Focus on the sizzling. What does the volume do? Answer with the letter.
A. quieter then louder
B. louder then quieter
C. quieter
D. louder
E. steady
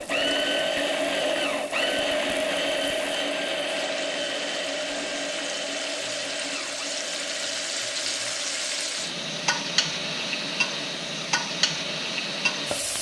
D.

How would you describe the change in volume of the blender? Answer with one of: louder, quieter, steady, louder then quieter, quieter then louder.
quieter.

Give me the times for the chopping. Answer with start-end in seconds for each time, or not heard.
not heard.